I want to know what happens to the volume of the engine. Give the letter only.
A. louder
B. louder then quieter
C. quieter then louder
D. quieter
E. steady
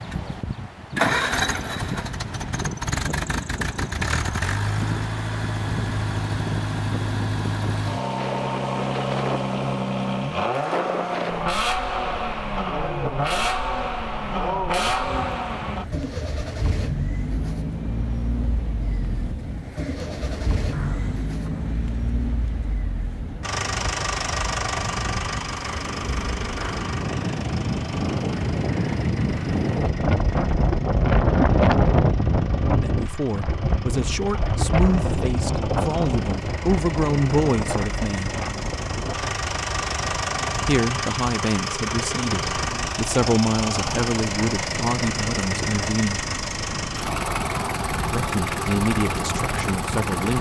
C.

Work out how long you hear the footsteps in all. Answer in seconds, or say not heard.
not heard.